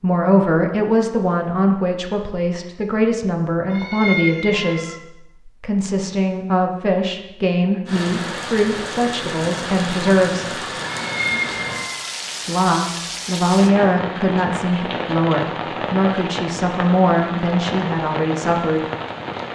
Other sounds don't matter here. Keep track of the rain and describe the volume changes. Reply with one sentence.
The loudness of the rain stays about the same.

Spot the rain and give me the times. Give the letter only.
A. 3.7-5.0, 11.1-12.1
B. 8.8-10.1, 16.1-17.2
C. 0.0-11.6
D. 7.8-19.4
D.